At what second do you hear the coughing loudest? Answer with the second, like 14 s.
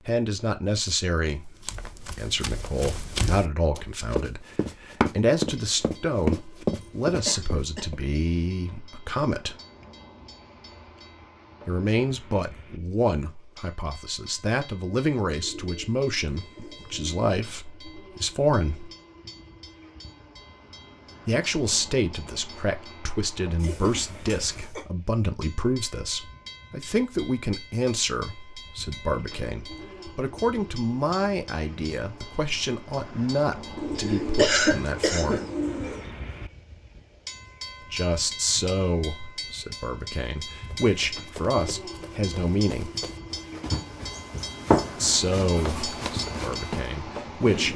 35 s.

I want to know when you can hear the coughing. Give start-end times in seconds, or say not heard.
6.8-7.9, 23.6-24.9, 34.0-35.5.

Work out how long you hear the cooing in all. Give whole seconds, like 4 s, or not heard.
4 s.